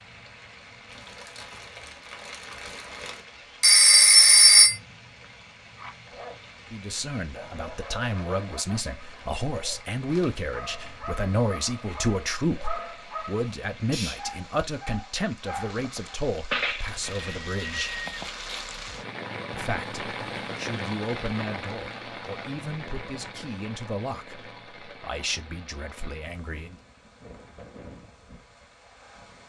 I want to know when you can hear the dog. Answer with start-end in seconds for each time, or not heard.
5.8-16.2.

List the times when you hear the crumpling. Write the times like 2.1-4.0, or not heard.
0.8-3.2, 16.9-18.9.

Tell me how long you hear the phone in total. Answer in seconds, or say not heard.
3 s.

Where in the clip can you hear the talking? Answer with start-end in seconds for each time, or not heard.
6.7-17.9, 19.5-26.8.